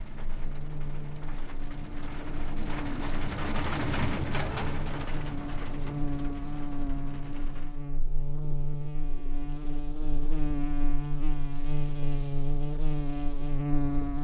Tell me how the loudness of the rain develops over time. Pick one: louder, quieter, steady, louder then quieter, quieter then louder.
louder then quieter.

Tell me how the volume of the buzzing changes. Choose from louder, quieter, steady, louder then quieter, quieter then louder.
louder.